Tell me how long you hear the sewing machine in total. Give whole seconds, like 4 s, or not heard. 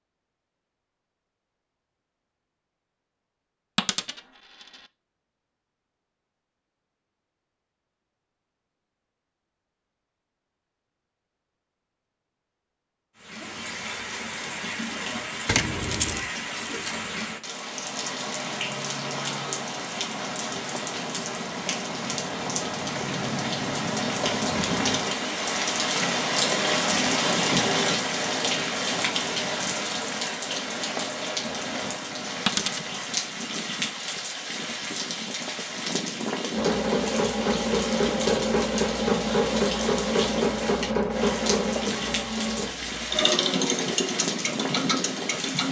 9 s.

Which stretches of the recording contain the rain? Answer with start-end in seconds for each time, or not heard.
13.2-45.6.